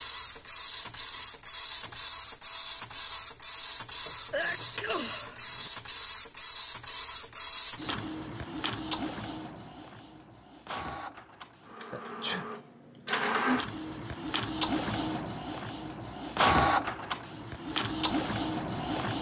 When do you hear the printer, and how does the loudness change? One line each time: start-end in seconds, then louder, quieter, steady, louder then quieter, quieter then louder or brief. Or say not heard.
0.0-19.1 louder.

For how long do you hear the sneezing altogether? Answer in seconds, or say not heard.
2 s.